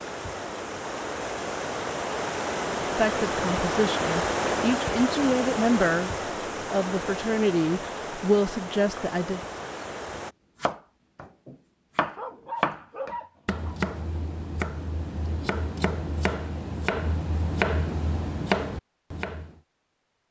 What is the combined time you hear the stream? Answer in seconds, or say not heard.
10 s.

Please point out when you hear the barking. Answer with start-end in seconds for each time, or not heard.
12.2-13.8.